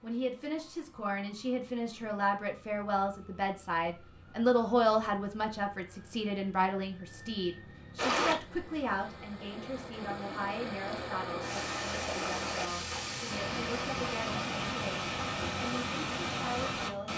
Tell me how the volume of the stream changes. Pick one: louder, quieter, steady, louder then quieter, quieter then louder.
louder.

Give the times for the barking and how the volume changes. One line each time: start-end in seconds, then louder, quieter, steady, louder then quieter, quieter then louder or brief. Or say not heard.
not heard.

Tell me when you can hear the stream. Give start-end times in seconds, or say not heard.
8.0-17.1.